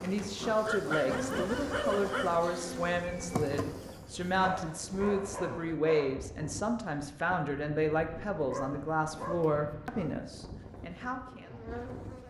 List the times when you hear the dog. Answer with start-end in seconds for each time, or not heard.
0.7-2.4, 4.4-6.2, 8.4-10.2.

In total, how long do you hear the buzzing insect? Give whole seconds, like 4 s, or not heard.
7 s.